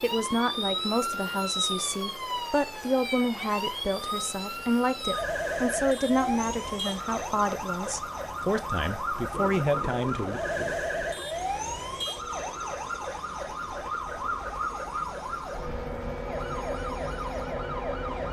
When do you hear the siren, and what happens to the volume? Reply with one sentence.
The siren can be heard from 0.0 to 18.2 s, at a steady volume.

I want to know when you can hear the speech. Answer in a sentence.
The speech can be heard from 0.0 to 10.4 s.